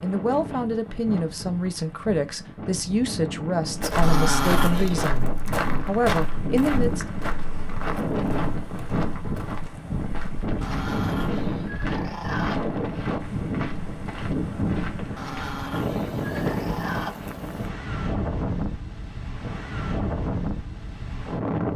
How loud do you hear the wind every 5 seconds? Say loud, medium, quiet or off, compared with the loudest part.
medium, loud, loud, loud, loud.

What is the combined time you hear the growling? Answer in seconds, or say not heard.
5 s.